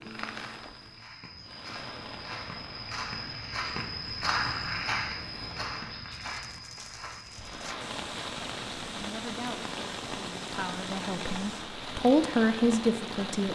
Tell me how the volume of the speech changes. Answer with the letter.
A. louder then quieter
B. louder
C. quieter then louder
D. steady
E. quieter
B.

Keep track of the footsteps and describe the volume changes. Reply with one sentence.
The loudness of the footsteps goes up, then down.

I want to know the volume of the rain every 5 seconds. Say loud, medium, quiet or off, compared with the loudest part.
medium, loud, loud.